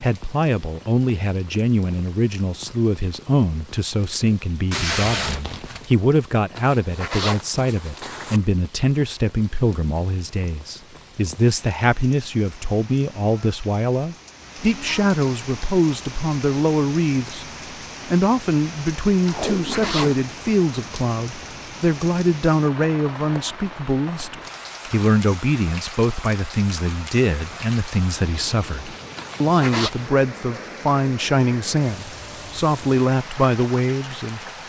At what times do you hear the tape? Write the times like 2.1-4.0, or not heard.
4.7-5.8, 19.2-20.1.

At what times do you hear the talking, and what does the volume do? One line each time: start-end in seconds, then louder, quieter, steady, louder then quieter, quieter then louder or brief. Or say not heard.
0.0-17.4 steady
18.1-34.4 steady.